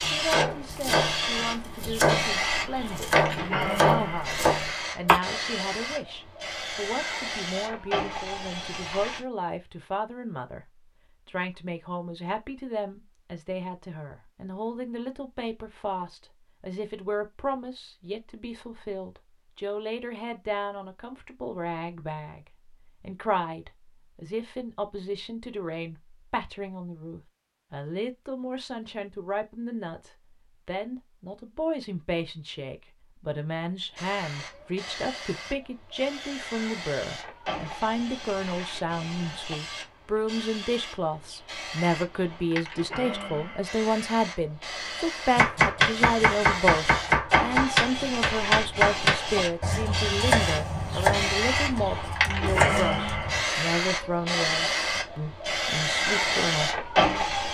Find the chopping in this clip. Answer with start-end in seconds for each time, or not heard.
0.0-5.2, 45.4-53.4.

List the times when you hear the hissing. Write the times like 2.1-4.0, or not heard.
0.0-9.2, 34.0-57.4.